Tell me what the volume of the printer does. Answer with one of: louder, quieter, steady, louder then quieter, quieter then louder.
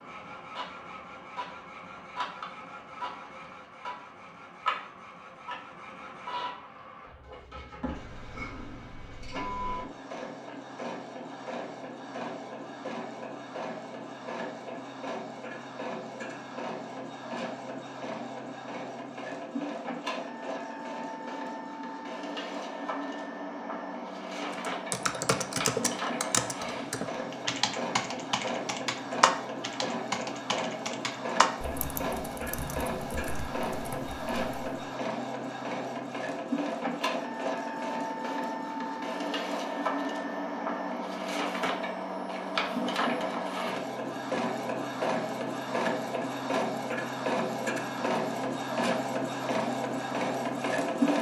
louder.